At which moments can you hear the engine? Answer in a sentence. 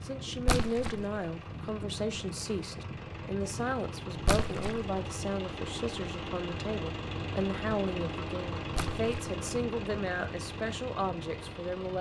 You can hear the engine from 0.0 to 11.9 s.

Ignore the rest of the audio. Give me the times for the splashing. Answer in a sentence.
The splashing can be heard from 0.5 to 1.1 s, from 4.2 to 4.8 s and from 8.7 to 9.3 s.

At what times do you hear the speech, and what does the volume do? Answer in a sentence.
You can hear the speech from 0.0 to 11.9 s, at a steady volume.